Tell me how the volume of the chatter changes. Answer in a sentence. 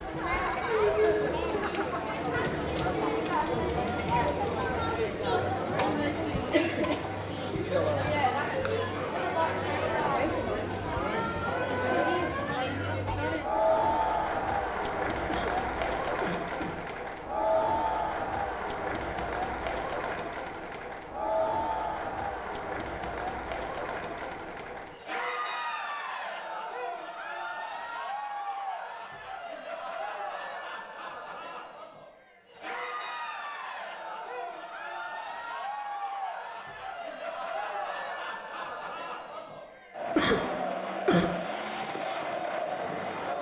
The volume of the chatter goes down.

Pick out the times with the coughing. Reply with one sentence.
The coughing can be heard from 15.2 to 16.9 s and from 40.1 to 41.3 s.